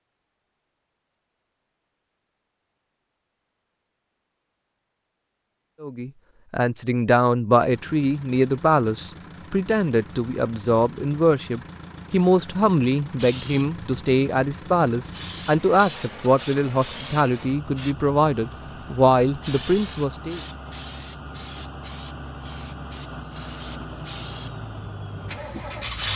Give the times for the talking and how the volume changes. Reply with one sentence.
The talking can be heard from 5.8 to 20.4 s, at a steady volume.